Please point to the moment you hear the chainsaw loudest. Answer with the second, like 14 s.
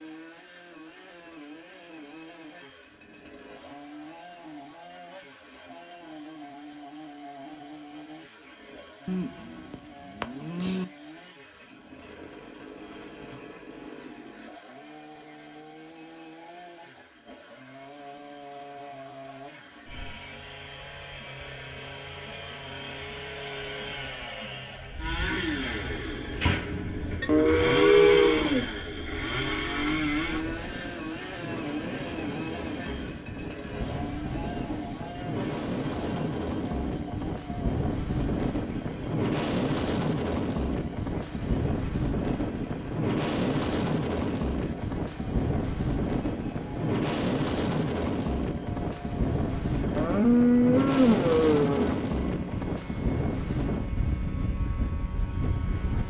28 s.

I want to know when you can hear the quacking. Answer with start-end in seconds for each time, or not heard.
not heard.